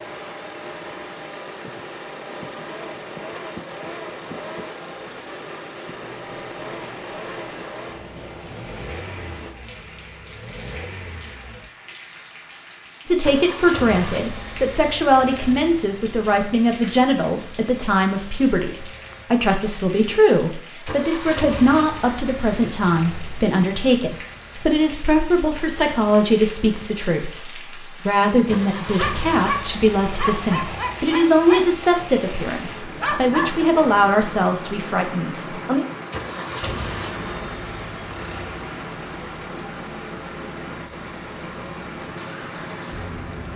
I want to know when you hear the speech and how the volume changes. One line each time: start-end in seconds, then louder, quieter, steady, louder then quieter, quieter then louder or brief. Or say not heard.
13.1-35.9 steady.